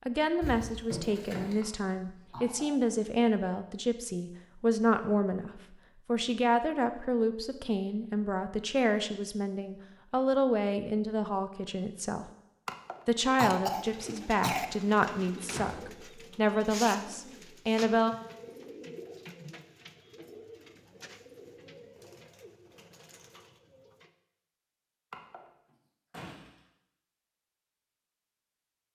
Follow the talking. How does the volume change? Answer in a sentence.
The volume of the talking stays about the same.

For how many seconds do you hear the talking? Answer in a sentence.
You can hear the talking for 17 seconds altogether.